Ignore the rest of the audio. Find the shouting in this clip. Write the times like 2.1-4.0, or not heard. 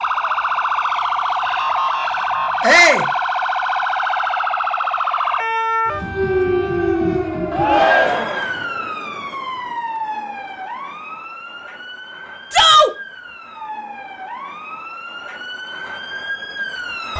2.6-3.1, 7.5-8.4, 12.5-12.9.